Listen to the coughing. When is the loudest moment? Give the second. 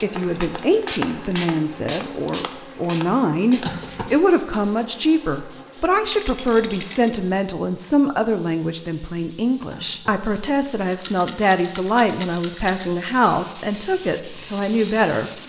4 s.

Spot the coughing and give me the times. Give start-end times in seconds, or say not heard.
3.6-4.2, 9.7-10.2.